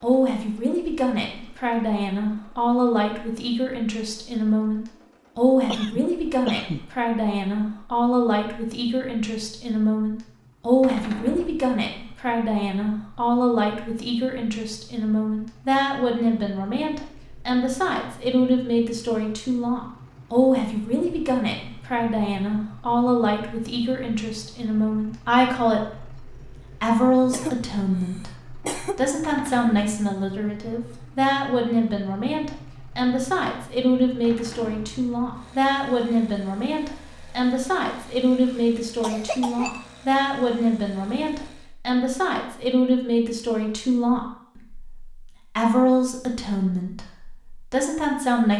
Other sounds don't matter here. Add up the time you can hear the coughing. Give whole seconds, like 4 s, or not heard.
4 s.